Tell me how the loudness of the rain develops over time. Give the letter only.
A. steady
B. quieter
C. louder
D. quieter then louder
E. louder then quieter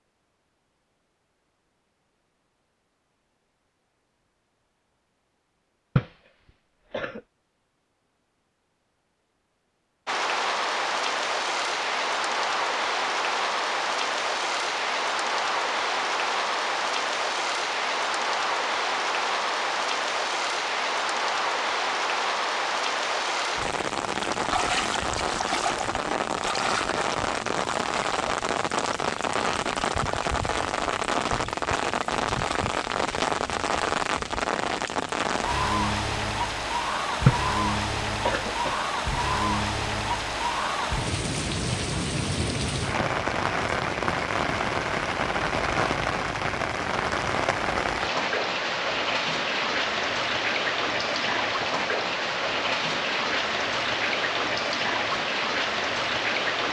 A.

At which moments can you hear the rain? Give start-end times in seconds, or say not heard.
10.1-56.6.